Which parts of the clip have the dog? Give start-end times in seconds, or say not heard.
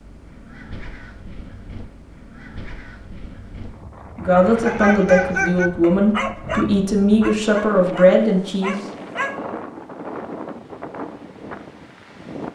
4.7-9.4.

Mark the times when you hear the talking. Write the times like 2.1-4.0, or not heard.
4.2-8.8.